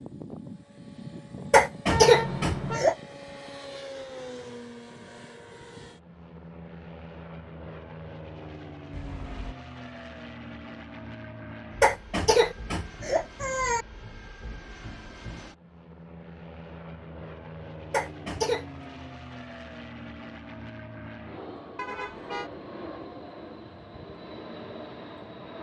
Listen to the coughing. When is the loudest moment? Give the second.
2 s.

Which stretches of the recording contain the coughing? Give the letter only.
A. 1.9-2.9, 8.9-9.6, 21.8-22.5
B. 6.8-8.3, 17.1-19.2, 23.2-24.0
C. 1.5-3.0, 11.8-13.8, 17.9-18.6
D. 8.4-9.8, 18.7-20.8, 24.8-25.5
C.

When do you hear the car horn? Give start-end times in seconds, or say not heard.
1.9-2.9, 8.9-9.6, 21.8-22.5.